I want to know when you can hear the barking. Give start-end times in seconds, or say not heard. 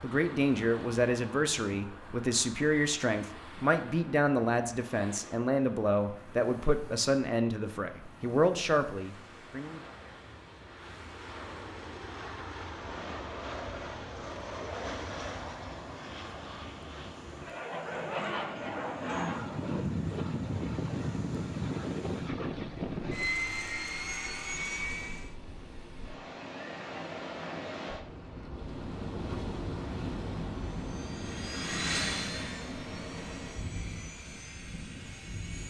17.8-19.4.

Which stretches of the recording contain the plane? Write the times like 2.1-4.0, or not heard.
0.0-25.3, 30.6-35.6.